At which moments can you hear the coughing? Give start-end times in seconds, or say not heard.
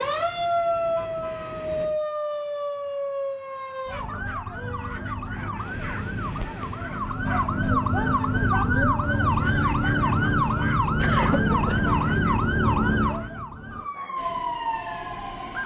11.0-12.2.